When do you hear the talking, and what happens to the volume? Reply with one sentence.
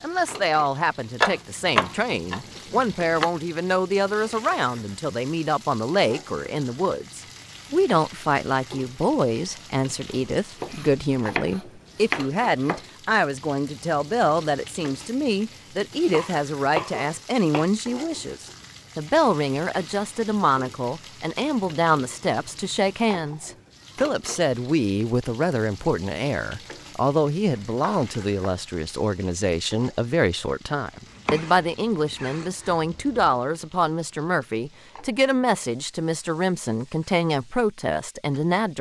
The talking can be heard from 0.0 to 38.7 s, at a steady volume.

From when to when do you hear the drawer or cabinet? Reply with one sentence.
You can't hear the drawer or cabinet here.